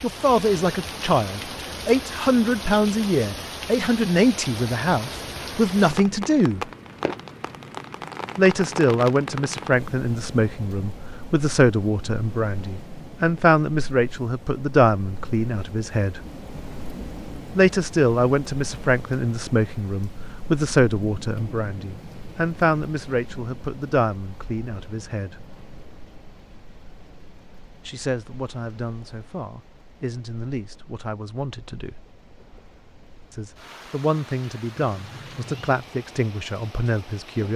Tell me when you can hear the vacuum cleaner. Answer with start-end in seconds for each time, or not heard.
not heard.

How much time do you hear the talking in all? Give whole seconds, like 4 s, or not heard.
31 s.